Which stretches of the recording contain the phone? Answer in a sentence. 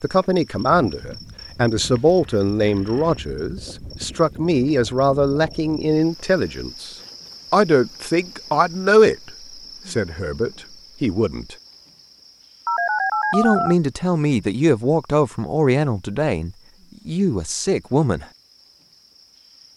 You can hear the phone from 1.9 to 3.1 s and from 12.7 to 13.8 s.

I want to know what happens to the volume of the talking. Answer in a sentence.
The loudness of the talking stays about the same.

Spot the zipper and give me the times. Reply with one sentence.
You can't hear the zipper here.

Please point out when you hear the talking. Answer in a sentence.
You can hear the talking from 0.0 to 11.6 s and from 13.3 to 18.2 s.